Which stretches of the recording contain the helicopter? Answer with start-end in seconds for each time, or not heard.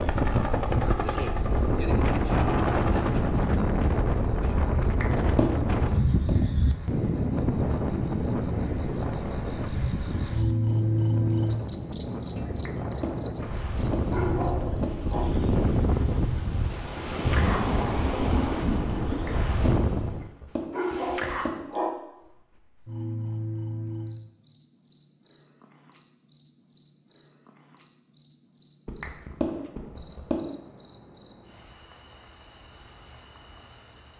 0.0-3.6.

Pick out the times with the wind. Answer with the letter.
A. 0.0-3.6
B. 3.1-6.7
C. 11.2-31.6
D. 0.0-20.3
D.